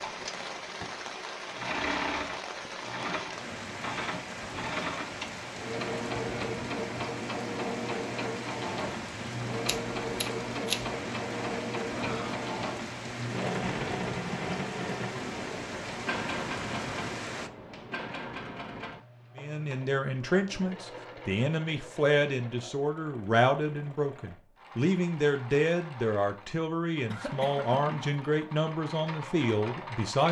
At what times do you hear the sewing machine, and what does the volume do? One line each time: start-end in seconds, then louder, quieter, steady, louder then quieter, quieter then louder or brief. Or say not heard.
0.0-30.2 quieter.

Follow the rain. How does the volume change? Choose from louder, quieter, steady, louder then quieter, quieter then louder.
steady.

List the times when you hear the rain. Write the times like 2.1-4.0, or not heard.
0.0-17.5.